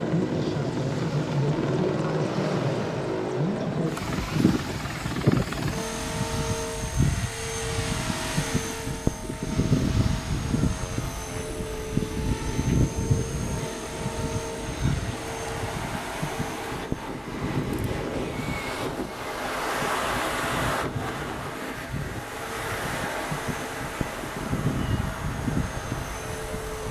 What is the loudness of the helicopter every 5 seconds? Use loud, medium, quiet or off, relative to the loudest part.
loud, loud, loud, medium, medium, medium.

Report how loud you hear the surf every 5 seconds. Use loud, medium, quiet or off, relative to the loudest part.
medium, medium, medium, loud, loud, medium.